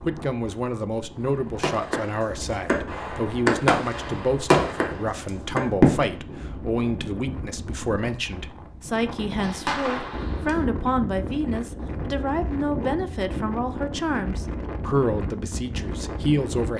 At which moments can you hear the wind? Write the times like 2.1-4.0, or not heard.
0.0-16.7.